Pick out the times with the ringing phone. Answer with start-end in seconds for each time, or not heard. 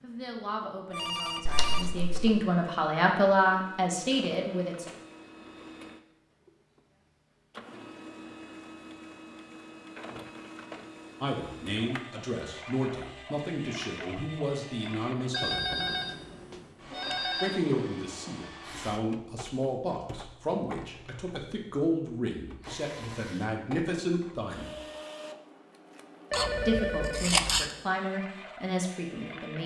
0.9-2.4, 15.3-17.6, 26.3-27.2.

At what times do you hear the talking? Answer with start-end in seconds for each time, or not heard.
0.0-4.9, 11.2-15.8, 17.4-24.8, 26.6-29.6.